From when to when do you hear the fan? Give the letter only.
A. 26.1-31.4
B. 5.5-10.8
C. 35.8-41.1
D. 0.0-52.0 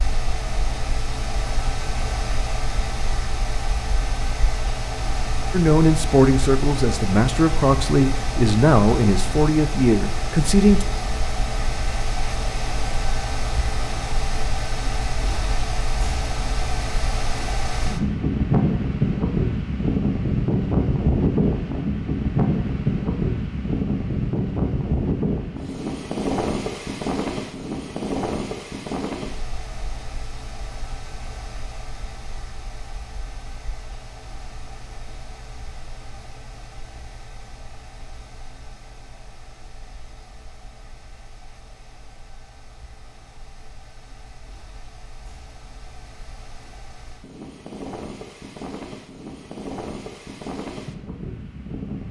D.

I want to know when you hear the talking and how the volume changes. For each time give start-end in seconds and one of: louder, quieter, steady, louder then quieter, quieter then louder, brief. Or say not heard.
5.5-10.8 steady.